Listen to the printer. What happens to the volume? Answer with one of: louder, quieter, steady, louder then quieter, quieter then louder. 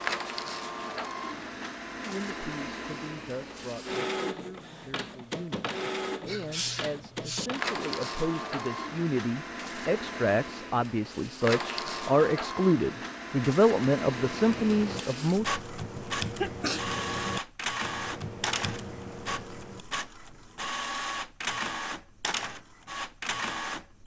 steady.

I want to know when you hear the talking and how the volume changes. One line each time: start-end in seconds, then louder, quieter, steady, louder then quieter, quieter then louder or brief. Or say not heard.
1.9-15.6 louder.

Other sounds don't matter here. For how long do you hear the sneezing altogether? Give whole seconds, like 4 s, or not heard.
2 s.